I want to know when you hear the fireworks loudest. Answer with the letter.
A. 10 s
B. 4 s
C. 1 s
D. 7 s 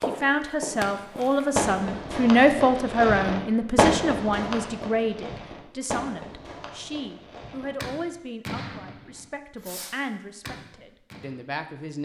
B.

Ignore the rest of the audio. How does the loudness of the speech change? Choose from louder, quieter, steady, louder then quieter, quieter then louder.
quieter.